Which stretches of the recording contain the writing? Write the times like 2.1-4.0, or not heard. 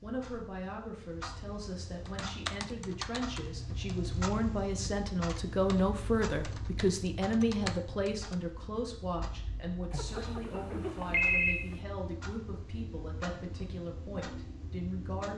not heard.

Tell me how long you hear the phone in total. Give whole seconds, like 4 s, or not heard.
2 s.